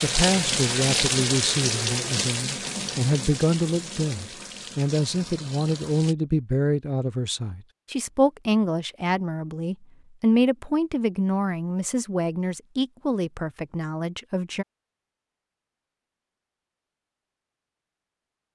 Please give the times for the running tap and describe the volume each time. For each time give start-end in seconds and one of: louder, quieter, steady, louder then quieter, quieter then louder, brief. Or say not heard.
0.0-6.2 quieter.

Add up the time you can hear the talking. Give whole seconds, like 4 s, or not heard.
15 s.